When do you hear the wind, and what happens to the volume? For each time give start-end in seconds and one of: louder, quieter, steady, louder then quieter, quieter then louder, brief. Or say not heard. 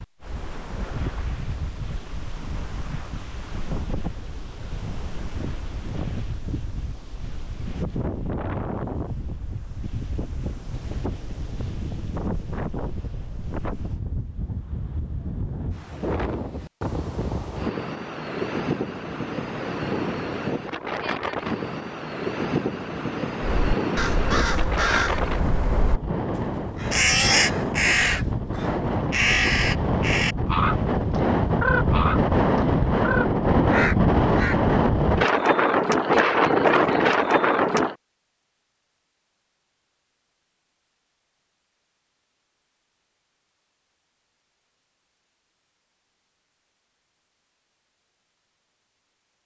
0.0-38.0 louder.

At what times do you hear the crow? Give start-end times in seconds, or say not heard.
23.4-34.6.